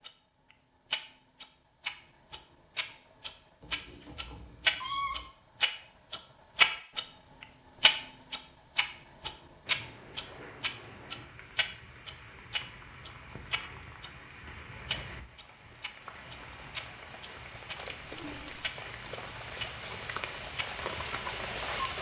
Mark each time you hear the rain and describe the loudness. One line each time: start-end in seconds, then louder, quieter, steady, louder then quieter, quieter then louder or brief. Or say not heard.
9.7-21.9 louder.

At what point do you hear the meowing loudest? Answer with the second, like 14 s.
5 s.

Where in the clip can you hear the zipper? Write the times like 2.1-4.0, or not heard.
18.0-18.6.